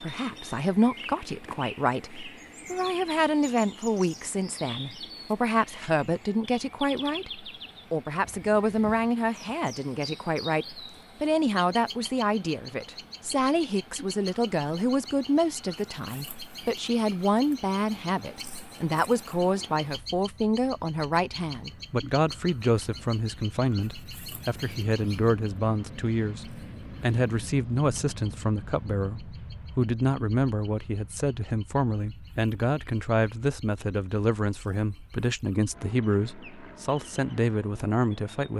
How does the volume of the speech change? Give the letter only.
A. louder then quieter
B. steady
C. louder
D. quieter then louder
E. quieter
B.